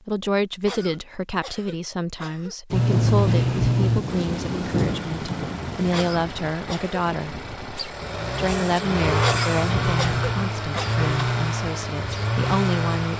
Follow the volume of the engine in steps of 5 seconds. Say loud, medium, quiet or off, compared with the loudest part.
loud, medium, loud.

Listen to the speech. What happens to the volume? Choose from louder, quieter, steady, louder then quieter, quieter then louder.
steady.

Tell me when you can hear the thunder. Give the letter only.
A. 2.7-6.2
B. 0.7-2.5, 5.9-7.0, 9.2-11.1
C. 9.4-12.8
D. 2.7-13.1
A.